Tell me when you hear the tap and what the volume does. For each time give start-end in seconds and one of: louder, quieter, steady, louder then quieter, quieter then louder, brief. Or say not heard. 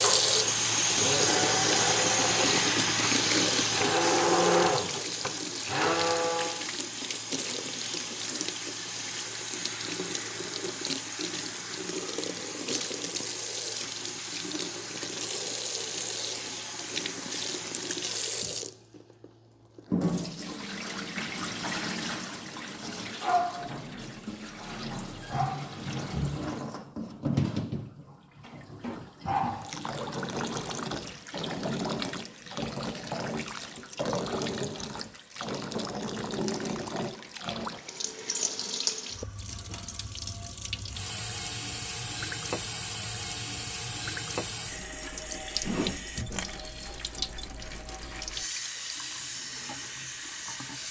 0.0-50.8 quieter.